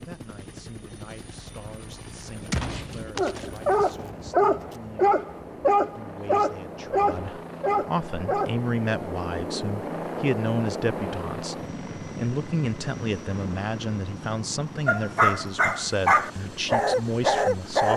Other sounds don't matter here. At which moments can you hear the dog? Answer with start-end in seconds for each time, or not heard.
3.1-8.7, 14.8-17.9.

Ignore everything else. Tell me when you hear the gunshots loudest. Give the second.
3 s.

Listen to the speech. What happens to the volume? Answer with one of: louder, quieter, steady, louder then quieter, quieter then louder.
louder.